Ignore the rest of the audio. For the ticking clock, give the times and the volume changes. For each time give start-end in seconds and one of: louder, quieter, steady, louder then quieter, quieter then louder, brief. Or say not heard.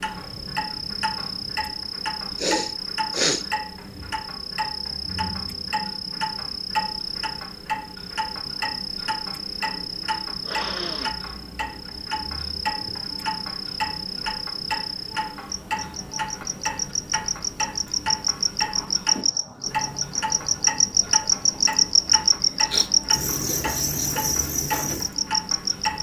0.0-25.9 steady.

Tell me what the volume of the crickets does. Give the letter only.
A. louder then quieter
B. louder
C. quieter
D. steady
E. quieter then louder
B.